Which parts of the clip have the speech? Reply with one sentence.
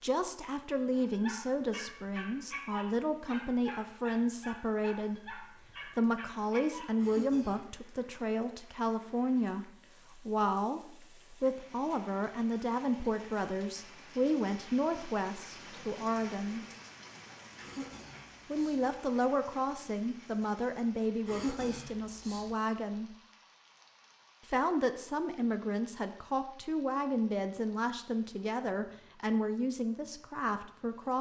The speech can be heard from 0.0 to 16.6 s, from 18.4 to 23.1 s and from 24.4 to 31.1 s.